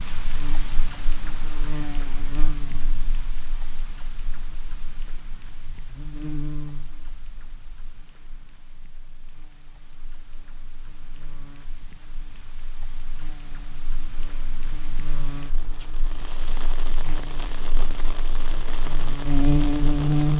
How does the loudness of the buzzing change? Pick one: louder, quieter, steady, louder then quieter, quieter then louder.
quieter then louder.